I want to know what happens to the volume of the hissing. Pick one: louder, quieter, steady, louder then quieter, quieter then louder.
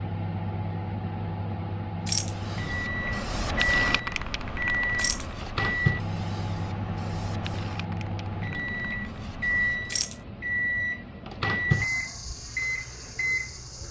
quieter.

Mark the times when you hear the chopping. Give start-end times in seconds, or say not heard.
not heard.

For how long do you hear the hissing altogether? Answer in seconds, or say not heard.
8 s.